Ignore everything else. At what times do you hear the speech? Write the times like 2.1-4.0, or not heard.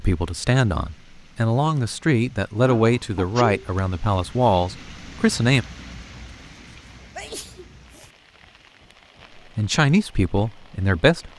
0.0-5.7, 9.6-11.3.